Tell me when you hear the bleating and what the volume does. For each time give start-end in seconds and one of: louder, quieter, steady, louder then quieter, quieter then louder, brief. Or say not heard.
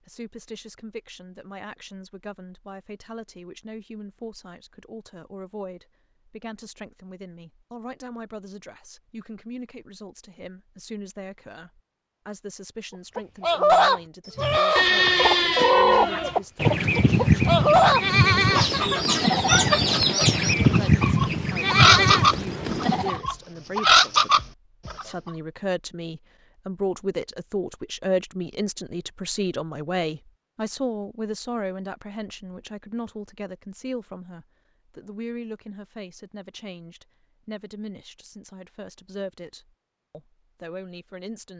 14.3-23.2 steady.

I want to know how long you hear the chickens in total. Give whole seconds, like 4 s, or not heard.
12 s.